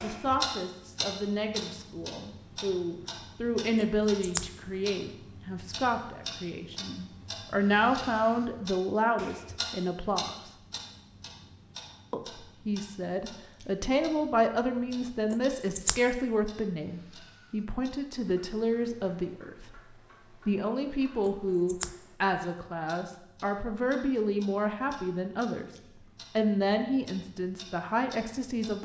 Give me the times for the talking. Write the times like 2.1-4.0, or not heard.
0.0-10.5, 12.1-25.7, 26.4-28.8.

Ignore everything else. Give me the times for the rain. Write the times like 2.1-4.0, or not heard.
not heard.